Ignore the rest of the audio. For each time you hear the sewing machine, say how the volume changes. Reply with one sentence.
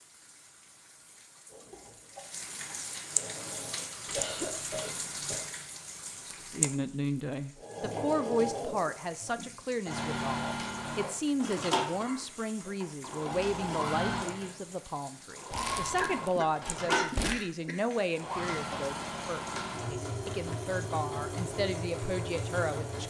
You can hear the sewing machine briefly from 1.5 to 4.0 s; and from 7.5 to 23.0 s, at a steady volume.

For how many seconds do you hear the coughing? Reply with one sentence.
The coughing can be heard for 4 seconds in total.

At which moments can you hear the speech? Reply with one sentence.
You can hear the speech from 6.2 to 23.0 s.